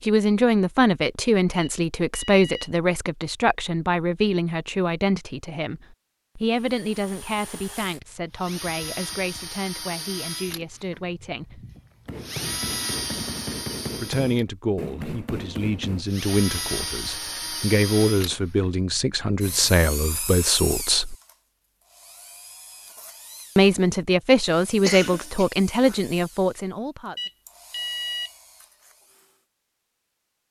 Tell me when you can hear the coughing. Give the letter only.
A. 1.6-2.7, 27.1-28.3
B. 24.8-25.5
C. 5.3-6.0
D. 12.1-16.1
B.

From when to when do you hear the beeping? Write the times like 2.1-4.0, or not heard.
1.6-2.7, 27.1-28.3.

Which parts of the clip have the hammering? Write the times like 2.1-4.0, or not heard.
12.1-16.1.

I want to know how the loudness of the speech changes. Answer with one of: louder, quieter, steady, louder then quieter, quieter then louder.
quieter then louder.